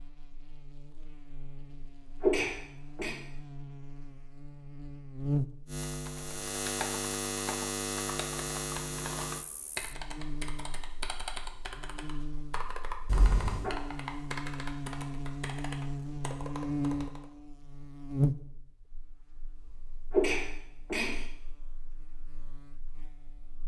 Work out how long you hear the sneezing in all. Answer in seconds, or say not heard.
3 s.